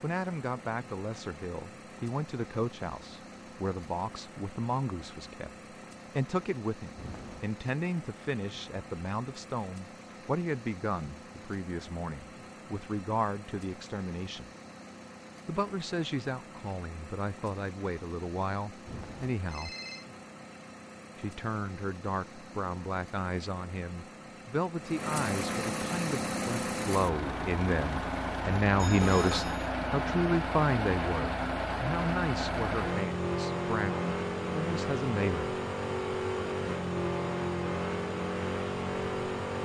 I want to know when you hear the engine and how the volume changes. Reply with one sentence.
You can hear the engine from 0.0 to 39.5 s, getting louder.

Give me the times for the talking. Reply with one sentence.
The talking can be heard from 0.0 to 5.5 s, from 6.2 to 14.5 s, from 15.4 to 19.8 s and from 21.1 to 35.5 s.